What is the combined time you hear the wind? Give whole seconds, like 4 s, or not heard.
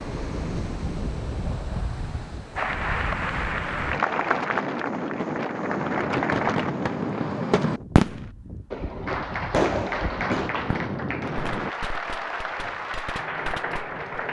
12 s.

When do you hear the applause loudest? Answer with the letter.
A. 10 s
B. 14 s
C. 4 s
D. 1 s
C.